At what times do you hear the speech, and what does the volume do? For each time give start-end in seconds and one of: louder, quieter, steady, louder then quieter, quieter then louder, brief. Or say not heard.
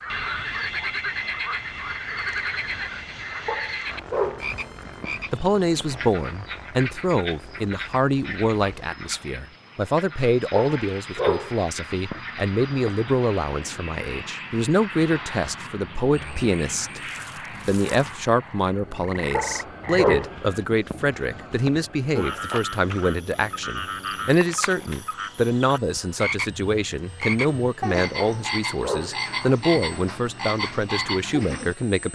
5.3-17.0 steady
17.6-32.1 steady.